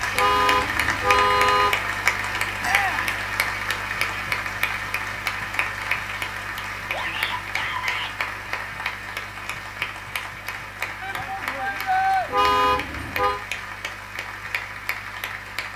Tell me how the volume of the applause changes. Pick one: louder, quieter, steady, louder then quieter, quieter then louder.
quieter.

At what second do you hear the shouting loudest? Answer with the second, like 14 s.
12 s.